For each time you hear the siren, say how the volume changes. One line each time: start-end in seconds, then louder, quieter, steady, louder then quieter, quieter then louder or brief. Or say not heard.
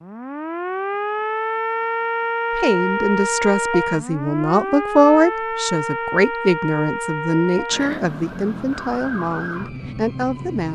0.0-10.6 quieter.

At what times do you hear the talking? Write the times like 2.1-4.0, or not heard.
2.5-10.6.